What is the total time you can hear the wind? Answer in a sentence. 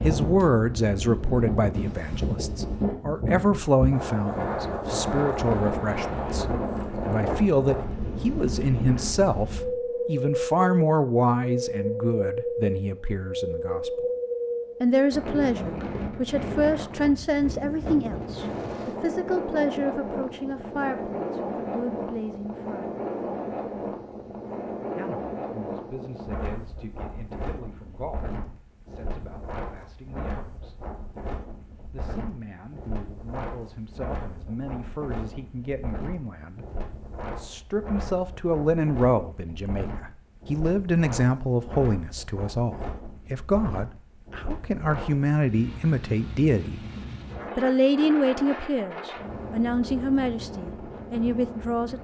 You can hear the wind for 52 seconds altogether.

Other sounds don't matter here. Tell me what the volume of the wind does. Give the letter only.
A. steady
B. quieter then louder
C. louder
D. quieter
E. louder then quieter
D.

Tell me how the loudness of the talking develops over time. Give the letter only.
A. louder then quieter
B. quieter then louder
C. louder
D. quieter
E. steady
B.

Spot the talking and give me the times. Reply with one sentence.
You can hear the talking from 0.0 to 14.1 s, from 14.8 to 23.0 s, from 24.9 to 30.8 s, from 31.9 to 46.8 s and from 47.5 to 52.0 s.